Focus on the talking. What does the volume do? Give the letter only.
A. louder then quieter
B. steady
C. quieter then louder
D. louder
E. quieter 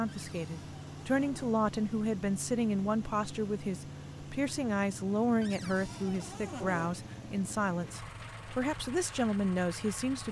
B.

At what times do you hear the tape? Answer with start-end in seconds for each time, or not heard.
not heard.